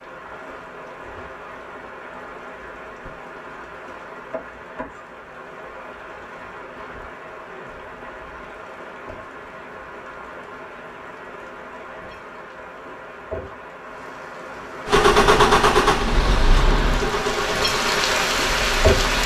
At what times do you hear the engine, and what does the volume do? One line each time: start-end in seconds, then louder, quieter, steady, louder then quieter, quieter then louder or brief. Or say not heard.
14.8-19.2 quieter.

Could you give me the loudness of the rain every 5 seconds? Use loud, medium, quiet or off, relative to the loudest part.
quiet, quiet, quiet, loud.